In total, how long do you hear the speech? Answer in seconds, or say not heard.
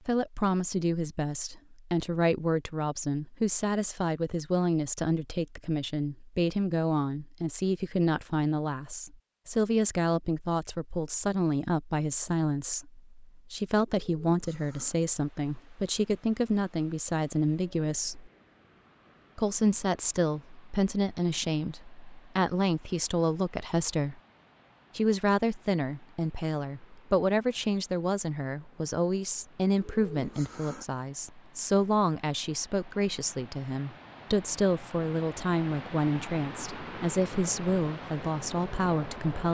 38 s.